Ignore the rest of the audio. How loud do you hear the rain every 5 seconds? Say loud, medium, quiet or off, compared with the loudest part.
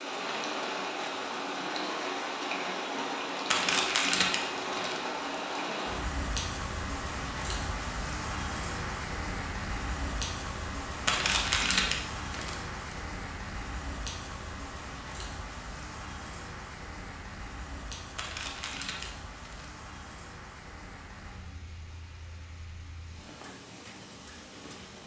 loud, loud, medium, medium, quiet.